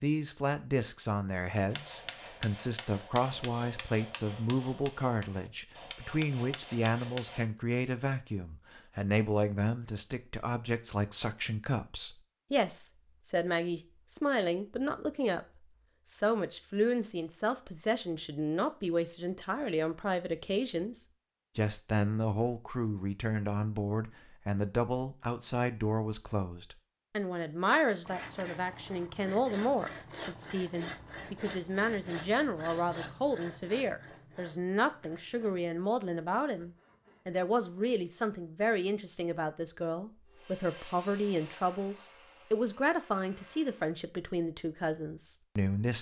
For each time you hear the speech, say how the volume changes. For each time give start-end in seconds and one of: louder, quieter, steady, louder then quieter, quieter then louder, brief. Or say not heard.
0.0-45.9 steady.